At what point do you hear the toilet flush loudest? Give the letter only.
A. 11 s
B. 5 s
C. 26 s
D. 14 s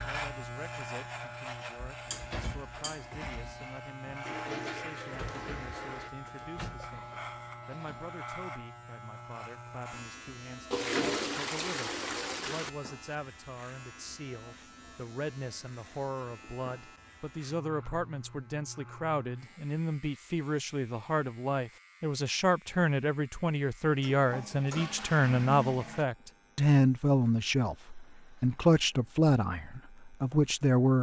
A.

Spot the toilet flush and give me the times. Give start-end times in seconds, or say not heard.
4.2-6.1, 10.7-12.7, 24.0-26.1.